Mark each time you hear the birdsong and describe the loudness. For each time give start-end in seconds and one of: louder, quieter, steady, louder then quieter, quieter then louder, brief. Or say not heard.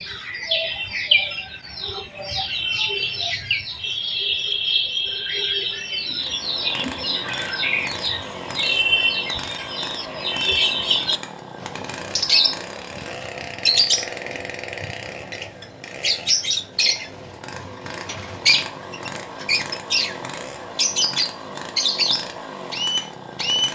0.0-23.7 steady.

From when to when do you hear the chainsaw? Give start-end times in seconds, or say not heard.
6.2-23.7.